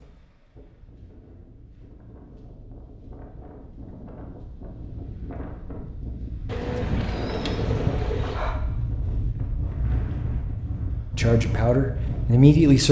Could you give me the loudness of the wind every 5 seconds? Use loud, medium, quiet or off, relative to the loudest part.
quiet, loud, loud.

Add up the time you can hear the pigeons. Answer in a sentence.
You can hear the pigeons for 2 seconds altogether.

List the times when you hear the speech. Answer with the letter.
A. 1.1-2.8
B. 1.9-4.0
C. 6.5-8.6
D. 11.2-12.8
D.